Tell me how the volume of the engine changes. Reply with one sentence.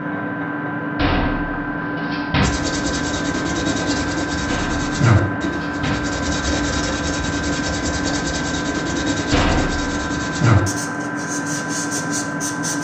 The loudness of the engine stays about the same.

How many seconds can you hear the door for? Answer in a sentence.
You can hear the door for 4 seconds altogether.